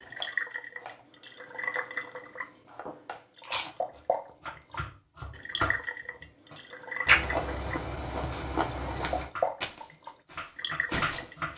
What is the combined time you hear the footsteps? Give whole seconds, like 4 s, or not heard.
3 s.